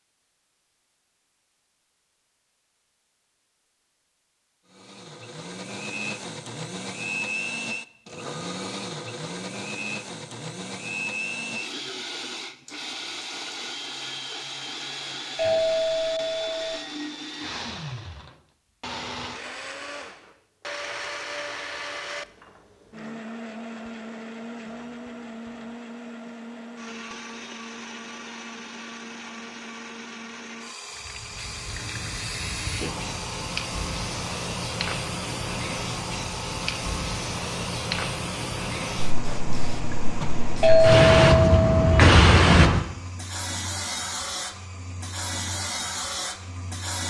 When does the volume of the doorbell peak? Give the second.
41 s.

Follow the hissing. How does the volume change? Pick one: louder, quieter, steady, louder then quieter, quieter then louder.
louder then quieter.